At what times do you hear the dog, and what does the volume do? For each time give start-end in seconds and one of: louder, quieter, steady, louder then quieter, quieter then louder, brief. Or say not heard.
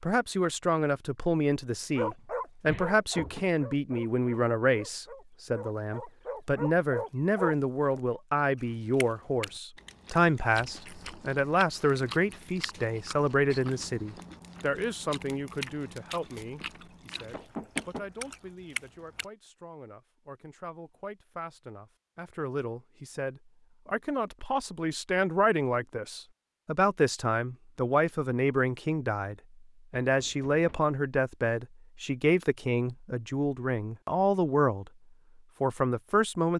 1.9-8.0 quieter then louder.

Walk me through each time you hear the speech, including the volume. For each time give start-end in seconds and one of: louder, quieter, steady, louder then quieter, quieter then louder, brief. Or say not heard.
0.0-34.9 quieter then louder
35.6-36.5 brief.